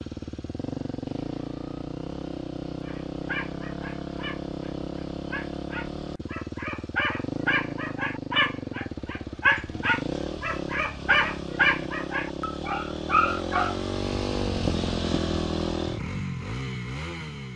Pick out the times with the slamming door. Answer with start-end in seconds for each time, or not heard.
not heard.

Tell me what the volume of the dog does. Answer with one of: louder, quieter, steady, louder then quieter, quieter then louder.
louder.